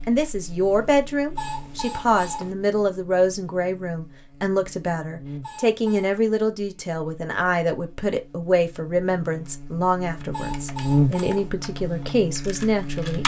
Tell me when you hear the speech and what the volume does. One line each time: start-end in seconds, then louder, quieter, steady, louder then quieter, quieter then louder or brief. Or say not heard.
0.1-13.2 steady.